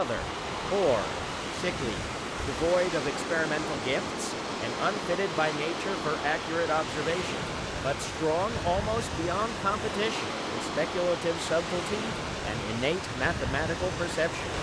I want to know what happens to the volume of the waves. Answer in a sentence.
The loudness of the waves stays about the same.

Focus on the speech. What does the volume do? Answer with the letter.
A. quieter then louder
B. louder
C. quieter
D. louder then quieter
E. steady
E.